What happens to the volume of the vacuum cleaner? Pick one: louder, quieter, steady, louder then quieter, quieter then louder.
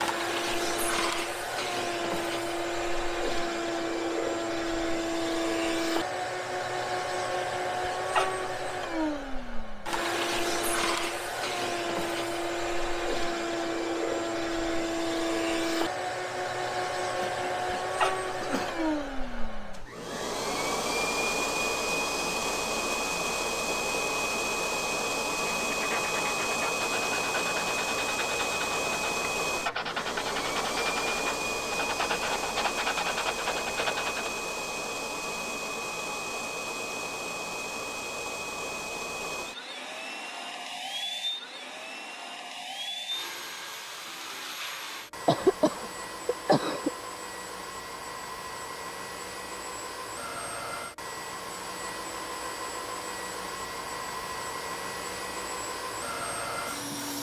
quieter.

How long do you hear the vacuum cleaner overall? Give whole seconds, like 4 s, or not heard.
57 s.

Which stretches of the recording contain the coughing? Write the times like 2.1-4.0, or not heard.
17.2-18.9, 45.2-46.9.